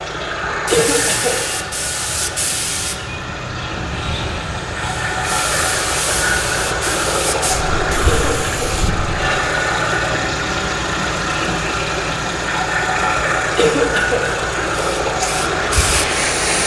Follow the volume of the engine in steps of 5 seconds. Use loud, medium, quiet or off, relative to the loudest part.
medium, loud, loud, loud.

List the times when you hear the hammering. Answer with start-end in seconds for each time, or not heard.
not heard.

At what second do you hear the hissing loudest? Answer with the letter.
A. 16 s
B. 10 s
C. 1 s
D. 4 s
A.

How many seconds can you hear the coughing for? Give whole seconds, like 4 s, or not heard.
2 s.